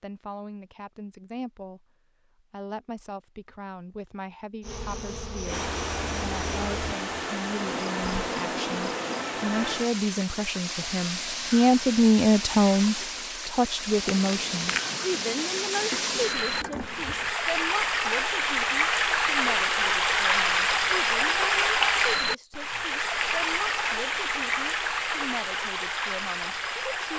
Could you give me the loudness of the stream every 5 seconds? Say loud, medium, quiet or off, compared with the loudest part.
off, medium, medium, loud, loud, medium.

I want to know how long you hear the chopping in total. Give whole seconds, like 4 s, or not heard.
not heard.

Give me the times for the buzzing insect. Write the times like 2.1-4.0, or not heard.
4.6-9.2, 14.1-17.4.